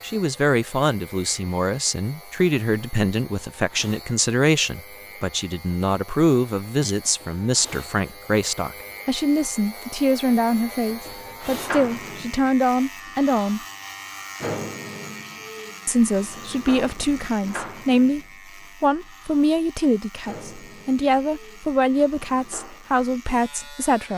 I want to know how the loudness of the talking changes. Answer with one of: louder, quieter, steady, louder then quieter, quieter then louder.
steady.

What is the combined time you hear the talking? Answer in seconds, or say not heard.
22 s.